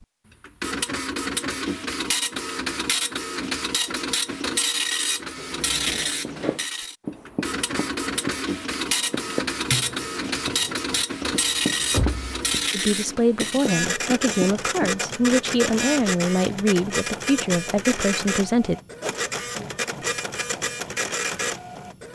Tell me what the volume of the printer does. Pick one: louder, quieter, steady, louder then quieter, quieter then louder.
steady.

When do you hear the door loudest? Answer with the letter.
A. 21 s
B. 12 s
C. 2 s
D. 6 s
B.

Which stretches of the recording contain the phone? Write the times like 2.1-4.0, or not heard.
not heard.